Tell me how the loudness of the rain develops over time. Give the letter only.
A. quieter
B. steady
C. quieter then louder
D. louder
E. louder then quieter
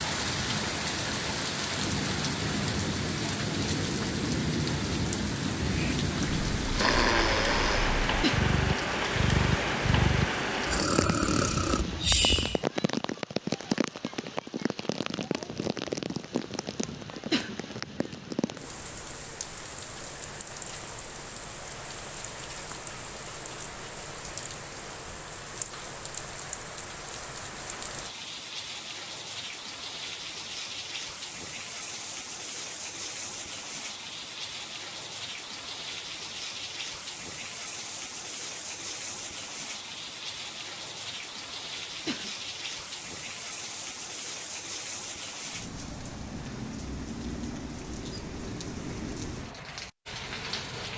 A.